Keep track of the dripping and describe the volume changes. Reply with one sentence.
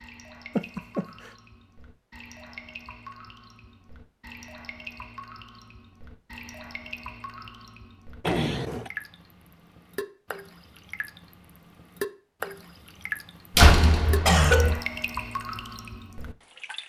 The loudness of the dripping goes up.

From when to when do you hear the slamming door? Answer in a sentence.
You can hear the slamming door from 13.6 to 14.8 s.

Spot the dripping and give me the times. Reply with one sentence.
The dripping can be heard from 0.0 to 16.8 s.